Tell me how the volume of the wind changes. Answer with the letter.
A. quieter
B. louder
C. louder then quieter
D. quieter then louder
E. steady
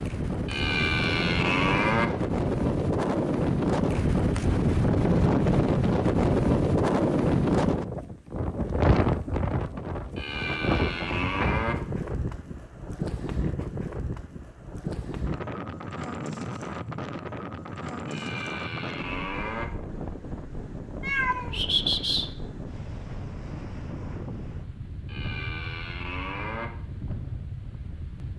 A.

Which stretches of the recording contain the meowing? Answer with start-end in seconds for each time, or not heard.
21.0-22.4.